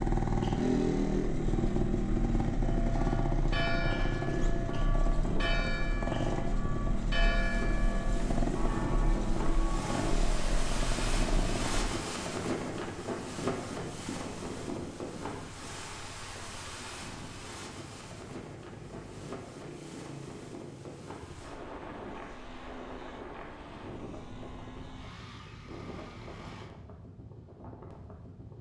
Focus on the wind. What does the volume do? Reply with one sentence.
The volume of the wind goes down.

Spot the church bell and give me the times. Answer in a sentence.
You can hear the church bell from 2.6 to 10.1 s.